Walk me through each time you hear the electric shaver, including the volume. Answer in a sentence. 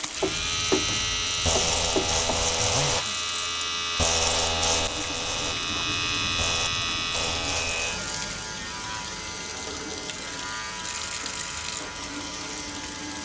You can hear the electric shaver from 0.0 to 13.2 s, getting quieter.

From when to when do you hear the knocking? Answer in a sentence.
The knocking can be heard from 0.2 to 2.5 s.